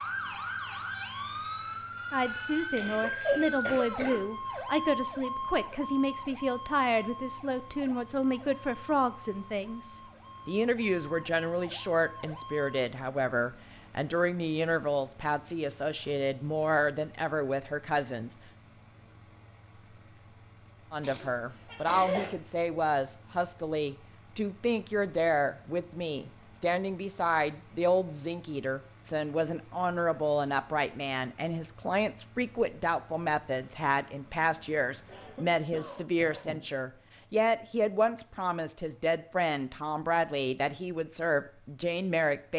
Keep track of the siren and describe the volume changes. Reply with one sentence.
The loudness of the siren goes down.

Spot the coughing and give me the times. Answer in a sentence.
You can hear the coughing from 2.8 to 4.2 s, from 21.0 to 22.3 s and from 35.0 to 36.6 s.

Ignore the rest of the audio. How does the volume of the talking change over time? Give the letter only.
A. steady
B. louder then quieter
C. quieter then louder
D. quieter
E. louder
A.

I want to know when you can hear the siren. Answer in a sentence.
The siren can be heard from 0.0 to 12.8 s.